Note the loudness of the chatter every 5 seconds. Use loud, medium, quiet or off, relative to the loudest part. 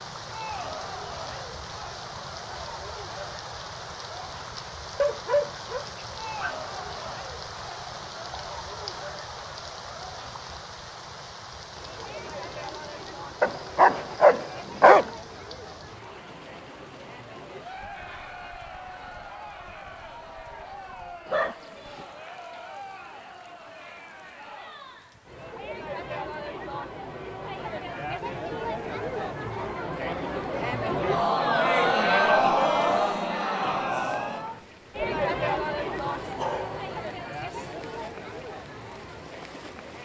quiet, quiet, quiet, quiet, quiet, medium, loud, medium.